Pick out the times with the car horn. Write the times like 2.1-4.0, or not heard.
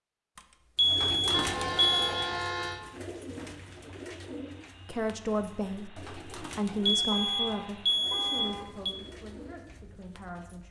1.3-2.9, 7.1-8.7.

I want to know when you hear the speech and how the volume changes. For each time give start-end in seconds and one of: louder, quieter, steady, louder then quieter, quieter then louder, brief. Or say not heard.
4.8-10.6 quieter.